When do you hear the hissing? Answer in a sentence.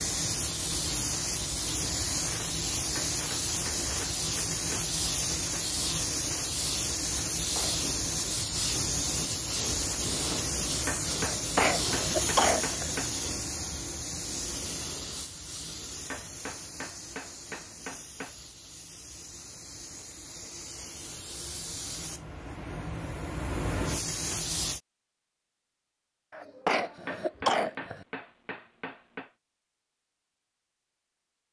The hissing can be heard from 0.0 to 24.8 s.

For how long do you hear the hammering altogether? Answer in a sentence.
You can hear the hammering for 10 seconds altogether.